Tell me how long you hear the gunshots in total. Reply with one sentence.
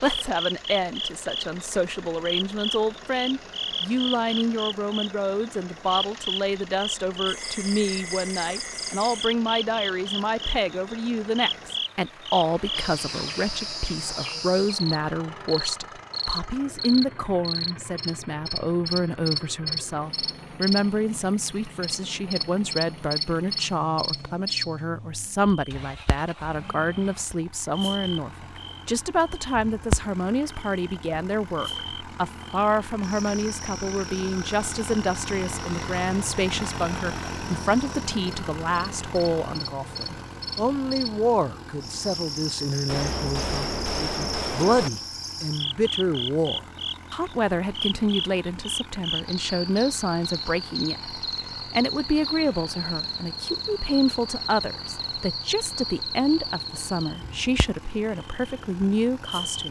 The gunshots can be heard for 2 seconds in total.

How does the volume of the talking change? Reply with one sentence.
The loudness of the talking stays about the same.